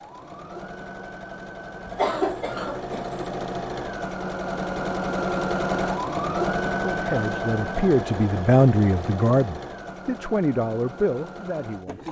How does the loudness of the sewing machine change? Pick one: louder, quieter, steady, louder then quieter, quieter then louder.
louder then quieter.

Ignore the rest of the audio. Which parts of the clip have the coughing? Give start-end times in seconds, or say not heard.
1.9-3.2.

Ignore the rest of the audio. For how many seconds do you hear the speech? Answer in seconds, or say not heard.
5 s.